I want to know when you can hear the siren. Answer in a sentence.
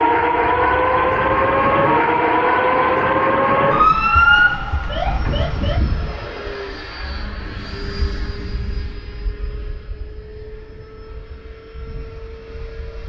The siren can be heard from 0.0 to 5.8 s.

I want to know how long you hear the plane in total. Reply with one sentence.
The plane can be heard for 13 seconds in total.